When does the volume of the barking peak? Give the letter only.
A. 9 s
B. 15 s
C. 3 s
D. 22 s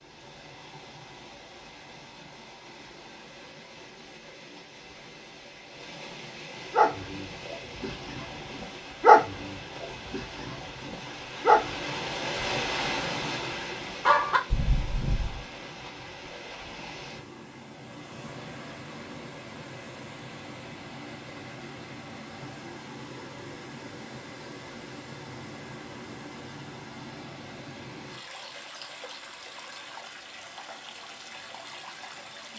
A.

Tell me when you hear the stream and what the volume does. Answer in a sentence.
The stream can be heard from 0.0 to 32.5 s, getting louder then quieter.